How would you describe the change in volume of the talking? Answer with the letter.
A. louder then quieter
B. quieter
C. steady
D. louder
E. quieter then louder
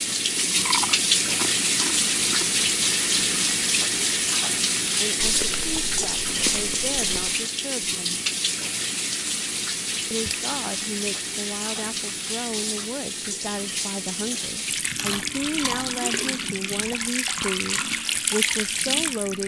D.